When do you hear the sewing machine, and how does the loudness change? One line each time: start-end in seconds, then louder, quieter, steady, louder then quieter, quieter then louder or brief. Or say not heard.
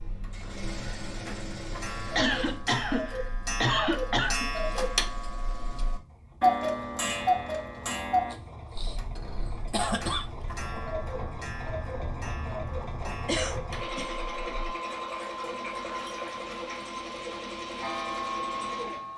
0.0-19.1 quieter then louder.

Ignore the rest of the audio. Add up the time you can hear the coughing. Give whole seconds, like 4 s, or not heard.
5 s.